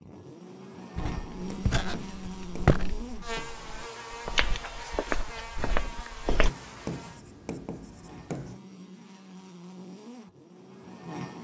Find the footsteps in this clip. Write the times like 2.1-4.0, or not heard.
0.9-6.5.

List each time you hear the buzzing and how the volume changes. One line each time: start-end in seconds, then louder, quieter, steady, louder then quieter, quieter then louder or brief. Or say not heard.
0.0-11.3 quieter.